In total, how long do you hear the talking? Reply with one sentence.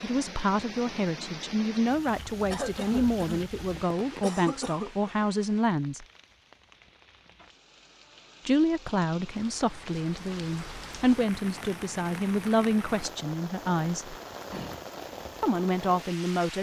The talking can be heard for 13 seconds in total.